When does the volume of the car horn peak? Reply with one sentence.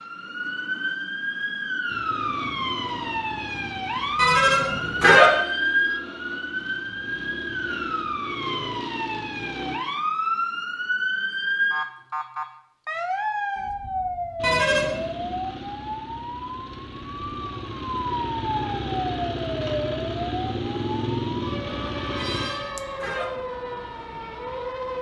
The volume of the car horn peaks at 5 seconds.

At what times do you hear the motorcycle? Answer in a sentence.
The motorcycle can be heard from 1.9 to 9.8 s and from 14.3 to 22.5 s.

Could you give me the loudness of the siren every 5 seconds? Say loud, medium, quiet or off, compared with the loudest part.
loud, loud, loud, medium, medium.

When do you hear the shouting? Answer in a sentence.
The shouting can't be heard in this clip.